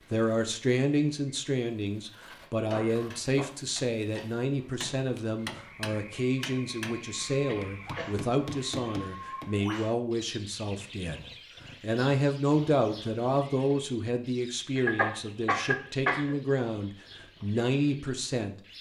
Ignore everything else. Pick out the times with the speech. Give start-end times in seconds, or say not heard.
0.1-18.6.